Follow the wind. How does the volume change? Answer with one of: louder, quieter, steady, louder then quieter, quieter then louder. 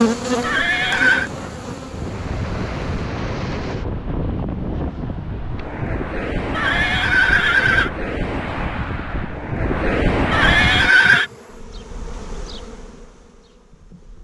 louder.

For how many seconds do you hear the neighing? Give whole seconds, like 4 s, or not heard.
3 s.